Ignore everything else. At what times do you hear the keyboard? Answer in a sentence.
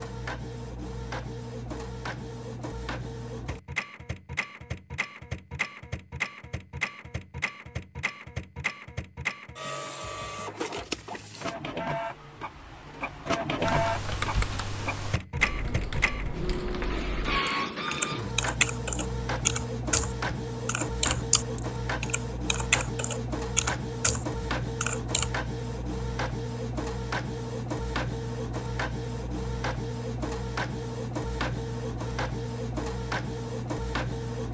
You can hear the keyboard from 13.6 to 25.3 s.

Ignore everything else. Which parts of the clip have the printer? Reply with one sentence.
You can hear the printer from 0.0 to 34.4 s.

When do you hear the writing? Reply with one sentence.
The writing can't be heard in this clip.